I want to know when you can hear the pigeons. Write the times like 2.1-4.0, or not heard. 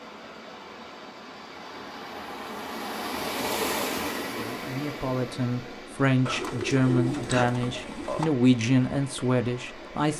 6.2-8.2.